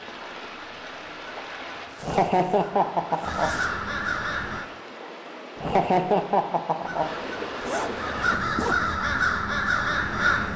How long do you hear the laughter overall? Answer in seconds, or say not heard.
3 s.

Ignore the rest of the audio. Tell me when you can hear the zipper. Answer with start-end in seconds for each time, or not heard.
1.8-3.7, 7.6-8.9.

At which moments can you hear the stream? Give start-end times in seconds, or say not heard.
0.0-8.4.